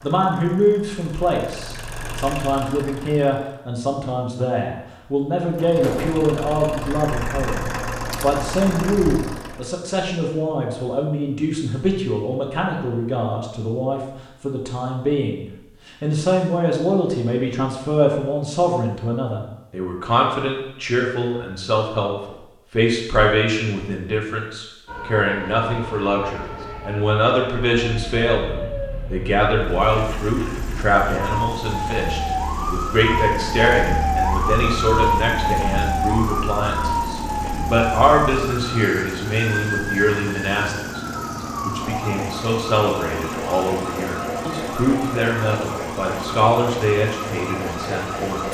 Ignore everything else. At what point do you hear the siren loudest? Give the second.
35 s.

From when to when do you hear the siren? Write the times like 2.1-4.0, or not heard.
24.9-48.4.